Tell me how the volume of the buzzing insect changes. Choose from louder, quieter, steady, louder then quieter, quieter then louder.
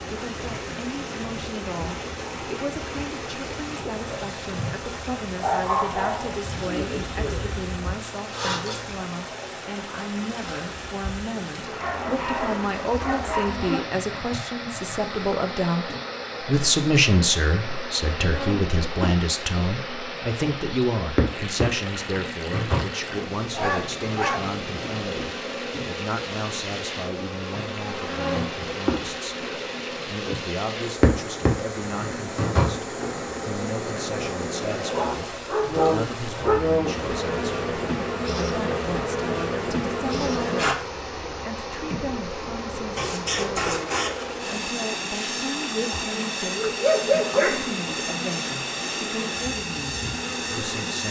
louder.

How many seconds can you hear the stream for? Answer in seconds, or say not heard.
51 s.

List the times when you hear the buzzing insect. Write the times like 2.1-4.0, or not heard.
0.0-51.0.